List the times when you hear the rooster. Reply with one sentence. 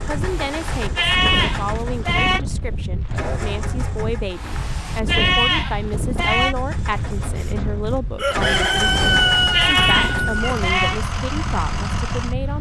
The rooster can be heard from 8.2 to 10.7 s.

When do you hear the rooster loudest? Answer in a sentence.
The loudest moment of the rooster is at 9 seconds.